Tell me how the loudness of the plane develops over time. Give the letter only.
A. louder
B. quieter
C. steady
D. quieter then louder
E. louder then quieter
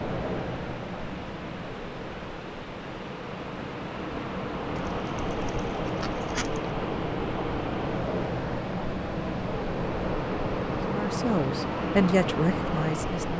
A.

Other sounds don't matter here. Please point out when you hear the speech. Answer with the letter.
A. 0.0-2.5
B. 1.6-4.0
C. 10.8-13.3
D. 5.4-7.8
C.